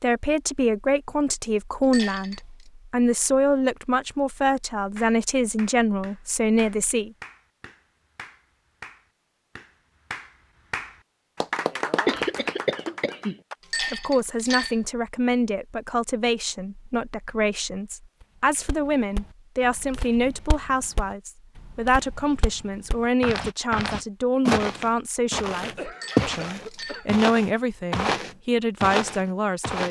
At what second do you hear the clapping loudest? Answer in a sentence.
The volume of the clapping peaks at 12 seconds.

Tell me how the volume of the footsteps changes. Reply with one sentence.
The volume of the footsteps goes up.